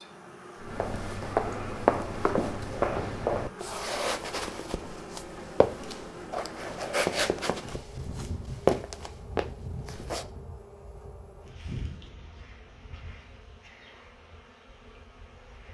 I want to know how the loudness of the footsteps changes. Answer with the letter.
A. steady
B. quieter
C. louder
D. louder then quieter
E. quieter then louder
E.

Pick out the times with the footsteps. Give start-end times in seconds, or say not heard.
0.6-10.3.